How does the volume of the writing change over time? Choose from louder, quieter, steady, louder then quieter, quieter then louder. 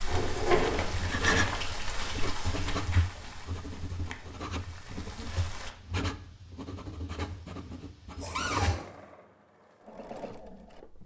quieter.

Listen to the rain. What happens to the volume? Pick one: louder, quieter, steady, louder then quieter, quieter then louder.
quieter.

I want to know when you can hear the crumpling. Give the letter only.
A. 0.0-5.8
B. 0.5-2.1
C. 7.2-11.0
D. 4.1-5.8
B.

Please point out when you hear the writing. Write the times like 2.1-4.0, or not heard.
0.8-8.8.